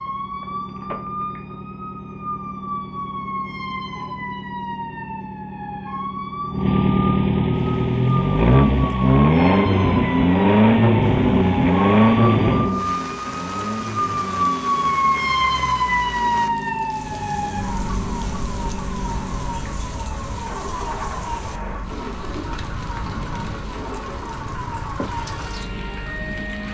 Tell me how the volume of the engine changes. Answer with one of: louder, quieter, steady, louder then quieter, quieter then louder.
louder then quieter.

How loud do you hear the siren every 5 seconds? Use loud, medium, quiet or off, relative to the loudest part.
medium, medium, loud, loud, medium, medium.